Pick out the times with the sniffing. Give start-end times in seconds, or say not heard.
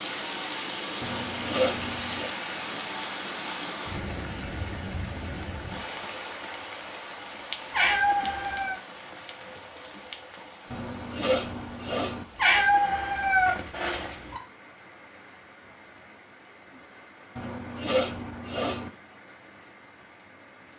1.0-2.4, 10.7-12.2, 17.4-18.9.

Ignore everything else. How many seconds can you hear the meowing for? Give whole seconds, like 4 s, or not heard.
3 s.